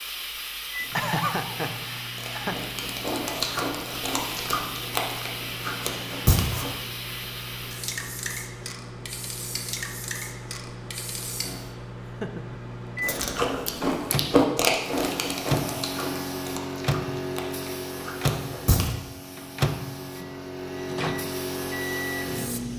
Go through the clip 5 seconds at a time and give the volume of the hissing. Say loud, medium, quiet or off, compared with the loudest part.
loud, loud, medium, loud, loud.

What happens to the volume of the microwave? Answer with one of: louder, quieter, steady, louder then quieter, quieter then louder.
louder.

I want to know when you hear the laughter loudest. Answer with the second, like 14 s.
1 s.